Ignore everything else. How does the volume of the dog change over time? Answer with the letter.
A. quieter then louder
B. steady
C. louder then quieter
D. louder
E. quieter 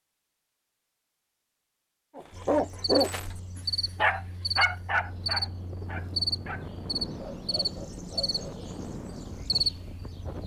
E.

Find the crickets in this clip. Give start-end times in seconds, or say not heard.
2.3-10.4.